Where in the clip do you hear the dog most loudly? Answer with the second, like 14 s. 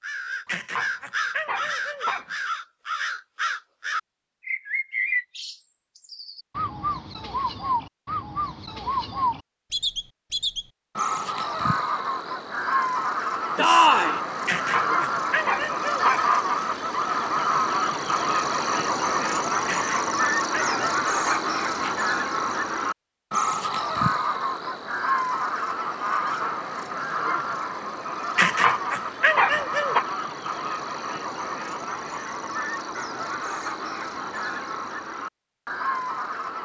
29 s.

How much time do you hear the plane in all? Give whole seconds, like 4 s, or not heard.
not heard.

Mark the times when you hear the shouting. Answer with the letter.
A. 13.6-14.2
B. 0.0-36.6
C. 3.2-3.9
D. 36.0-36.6
A.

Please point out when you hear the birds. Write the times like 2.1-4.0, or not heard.
0.0-36.6.